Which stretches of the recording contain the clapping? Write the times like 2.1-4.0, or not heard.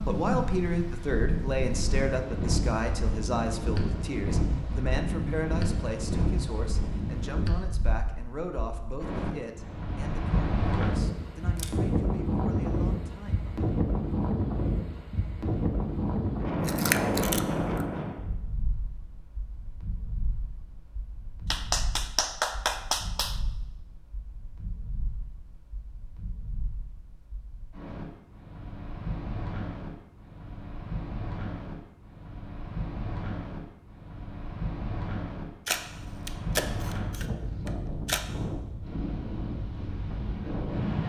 21.5-23.4.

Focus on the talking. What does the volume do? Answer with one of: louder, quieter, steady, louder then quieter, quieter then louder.
quieter.